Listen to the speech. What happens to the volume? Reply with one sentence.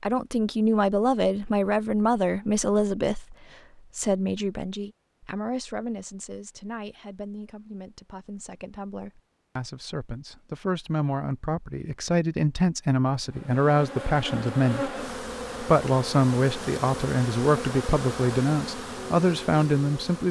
The volume of the speech goes down, then up.